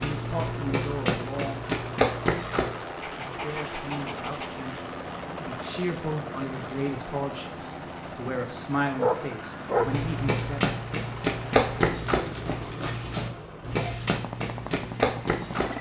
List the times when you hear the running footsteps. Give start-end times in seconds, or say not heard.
0.0-2.9, 9.7-15.7.